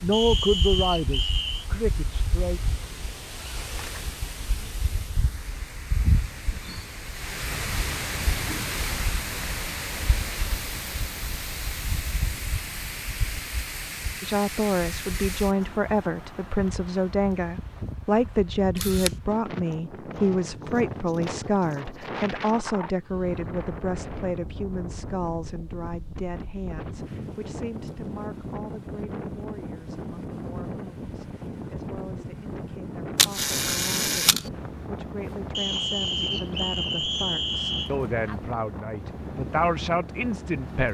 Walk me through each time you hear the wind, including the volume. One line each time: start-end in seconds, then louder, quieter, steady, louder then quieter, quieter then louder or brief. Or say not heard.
0.0-40.8 steady.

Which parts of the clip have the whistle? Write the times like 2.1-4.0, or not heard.
0.1-1.6, 35.5-37.9.